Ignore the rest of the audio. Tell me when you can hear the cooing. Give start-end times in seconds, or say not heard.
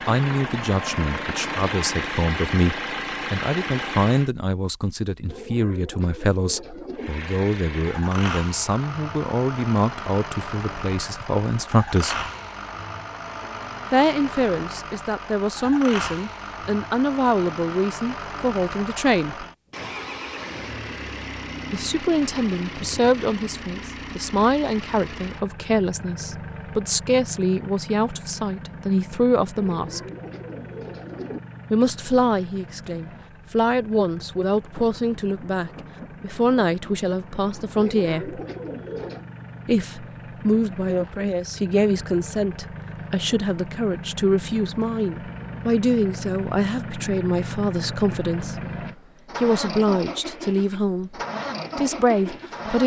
5.2-7.1, 29.6-31.4, 37.8-39.2.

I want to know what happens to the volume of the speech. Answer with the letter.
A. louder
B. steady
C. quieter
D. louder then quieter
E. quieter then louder
B.